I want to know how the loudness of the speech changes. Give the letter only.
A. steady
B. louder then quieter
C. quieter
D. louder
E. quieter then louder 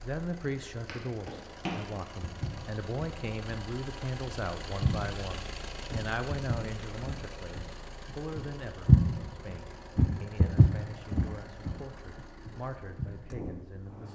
C.